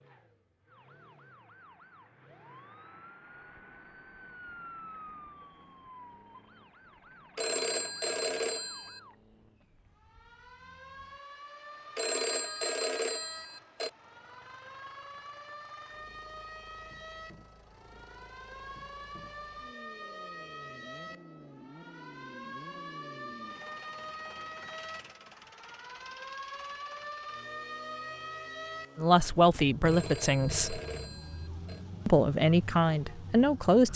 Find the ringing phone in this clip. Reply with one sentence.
You can hear the ringing phone from 7.3 to 9.0 s, from 11.9 to 13.9 s and from 29.9 to 31.9 s.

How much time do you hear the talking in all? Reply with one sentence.
The talking can be heard for 4 seconds in total.